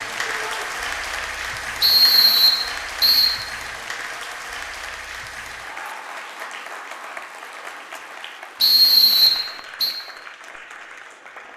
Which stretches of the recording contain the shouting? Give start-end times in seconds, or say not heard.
0.2-0.7.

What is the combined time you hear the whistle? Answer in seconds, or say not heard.
3 s.